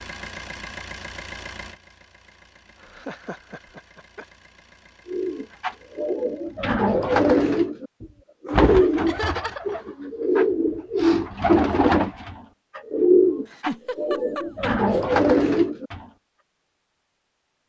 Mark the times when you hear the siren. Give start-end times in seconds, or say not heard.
not heard.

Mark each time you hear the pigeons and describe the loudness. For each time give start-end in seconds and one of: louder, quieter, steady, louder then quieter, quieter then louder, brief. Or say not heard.
5.0-16.1 steady.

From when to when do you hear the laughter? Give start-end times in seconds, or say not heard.
2.8-4.2, 9.1-9.8, 13.4-15.0.